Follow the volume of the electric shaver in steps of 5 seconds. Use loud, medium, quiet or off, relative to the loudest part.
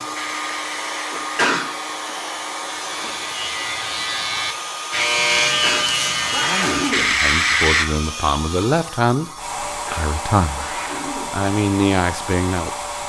medium, loud, off.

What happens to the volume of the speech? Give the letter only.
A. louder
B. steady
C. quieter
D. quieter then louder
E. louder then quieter
A.